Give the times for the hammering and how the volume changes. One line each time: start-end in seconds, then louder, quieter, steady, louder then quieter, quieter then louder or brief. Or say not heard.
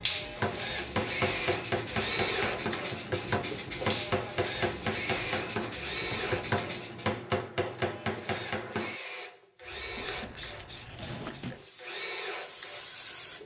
0.4-8.9 steady.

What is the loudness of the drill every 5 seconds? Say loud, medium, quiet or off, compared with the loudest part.
loud, loud, medium.